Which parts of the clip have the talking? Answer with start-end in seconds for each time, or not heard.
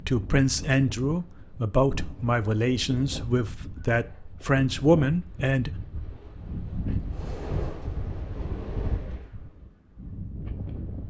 0.1-5.7.